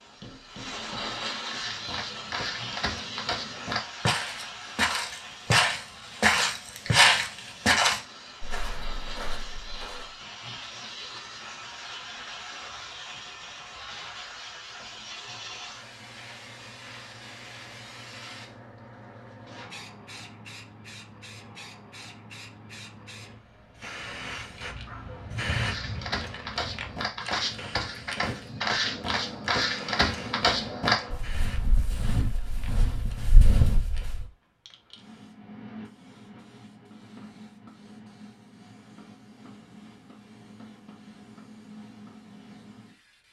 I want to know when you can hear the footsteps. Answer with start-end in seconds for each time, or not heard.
1.4-10.2, 25.6-34.2.